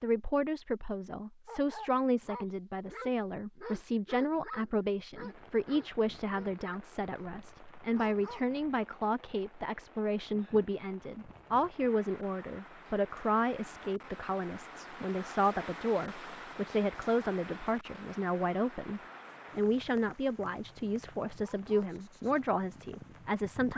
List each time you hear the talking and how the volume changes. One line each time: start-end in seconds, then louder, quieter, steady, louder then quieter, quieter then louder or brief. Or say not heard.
0.0-23.7 steady.